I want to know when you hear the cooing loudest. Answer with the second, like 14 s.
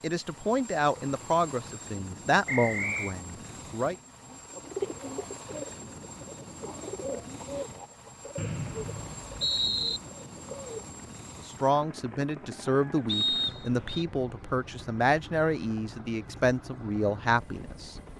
5 s.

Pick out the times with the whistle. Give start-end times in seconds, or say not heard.
2.5-3.1, 8.3-10.0, 13.1-14.1.